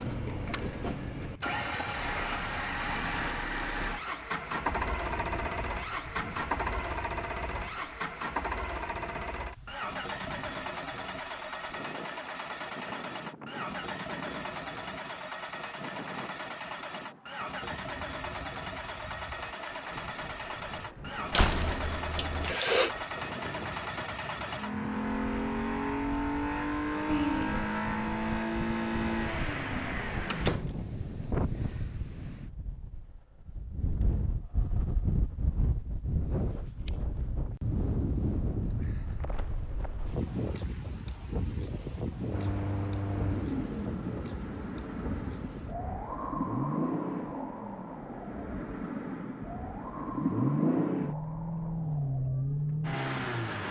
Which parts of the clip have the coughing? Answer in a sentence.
You can hear the coughing from 22.1 to 22.9 s and from 27.1 to 27.6 s.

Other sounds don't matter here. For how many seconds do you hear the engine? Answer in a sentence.
You can hear the engine for 42 seconds altogether.